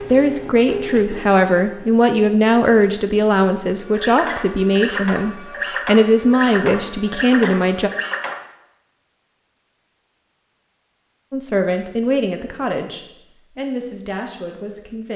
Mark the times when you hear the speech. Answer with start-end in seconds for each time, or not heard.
0.1-7.9, 11.3-15.1.